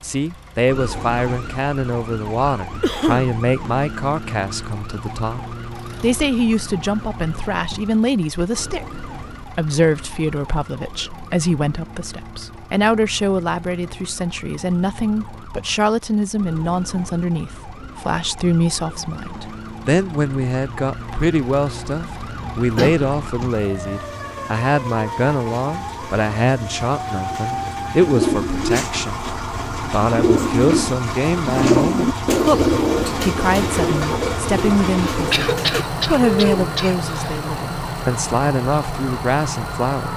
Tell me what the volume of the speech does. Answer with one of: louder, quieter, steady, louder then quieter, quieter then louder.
steady.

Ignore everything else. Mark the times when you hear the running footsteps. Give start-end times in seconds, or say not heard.
not heard.